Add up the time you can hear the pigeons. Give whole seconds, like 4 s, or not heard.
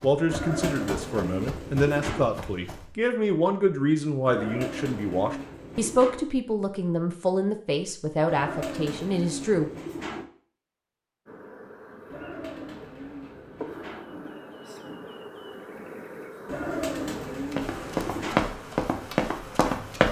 10 s.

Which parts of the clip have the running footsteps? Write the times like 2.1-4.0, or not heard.
0.0-2.9, 17.5-20.0.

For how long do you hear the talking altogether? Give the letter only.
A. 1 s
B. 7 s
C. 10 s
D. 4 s
C.